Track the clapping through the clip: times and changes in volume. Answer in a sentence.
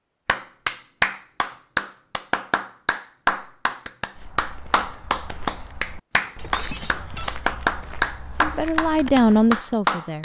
The clapping can be heard from 0.2 to 10.2 s, at a steady volume.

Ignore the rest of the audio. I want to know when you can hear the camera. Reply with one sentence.
The camera can't be heard in this clip.